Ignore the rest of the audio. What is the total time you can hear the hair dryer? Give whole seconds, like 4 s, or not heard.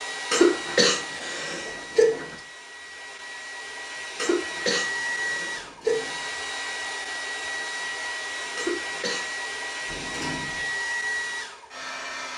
12 s.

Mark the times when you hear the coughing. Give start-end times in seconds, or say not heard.
0.3-2.4, 4.2-6.2, 8.6-9.3.